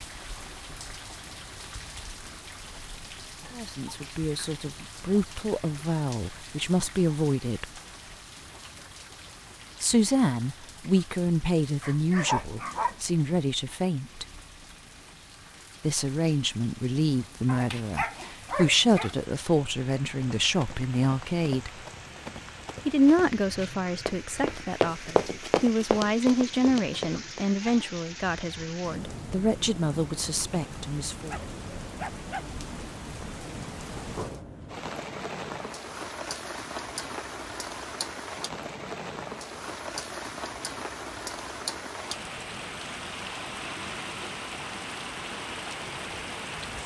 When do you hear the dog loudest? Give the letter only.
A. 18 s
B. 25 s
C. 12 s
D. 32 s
C.